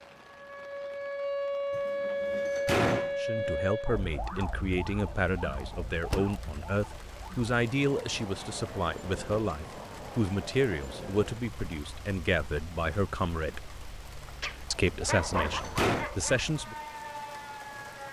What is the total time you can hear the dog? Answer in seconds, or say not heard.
2 s.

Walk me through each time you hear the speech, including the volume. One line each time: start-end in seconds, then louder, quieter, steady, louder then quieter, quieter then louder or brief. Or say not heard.
3.1-13.7 steady
14.7-16.8 brief.